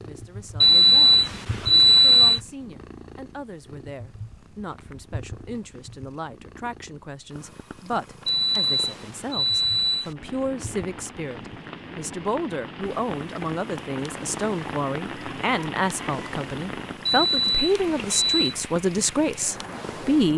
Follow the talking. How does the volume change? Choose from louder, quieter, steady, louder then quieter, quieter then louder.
louder.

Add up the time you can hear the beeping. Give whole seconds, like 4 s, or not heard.
5 s.